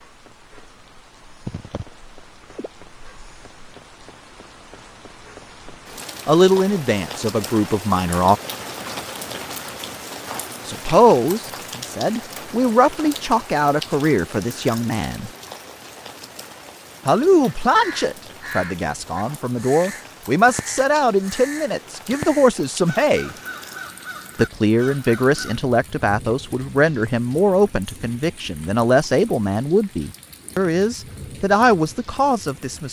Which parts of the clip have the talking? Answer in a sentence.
The talking can be heard from 6.2 to 8.4 s, from 10.7 to 15.3 s, from 17.1 to 23.4 s and from 24.4 to 32.8 s.